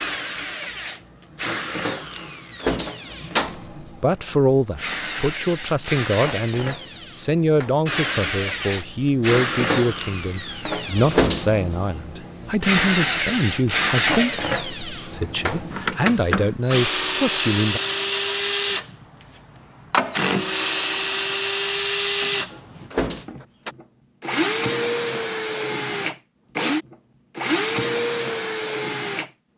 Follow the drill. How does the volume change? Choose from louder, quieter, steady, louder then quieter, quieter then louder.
louder.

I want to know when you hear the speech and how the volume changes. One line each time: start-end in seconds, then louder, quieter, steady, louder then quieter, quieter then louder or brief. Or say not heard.
3.8-17.8 steady.